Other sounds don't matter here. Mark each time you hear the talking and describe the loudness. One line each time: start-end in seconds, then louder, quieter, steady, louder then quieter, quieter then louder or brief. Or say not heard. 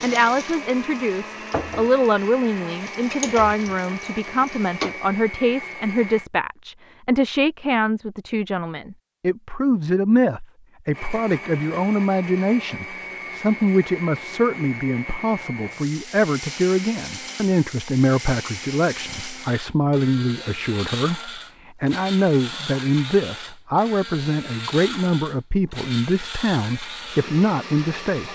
0.0-28.3 steady.